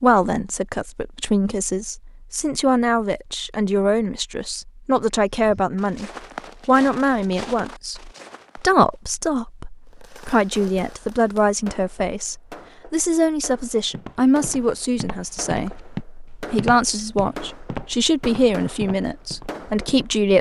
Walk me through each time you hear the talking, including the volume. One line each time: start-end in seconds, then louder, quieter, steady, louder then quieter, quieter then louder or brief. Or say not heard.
0.0-20.3 steady.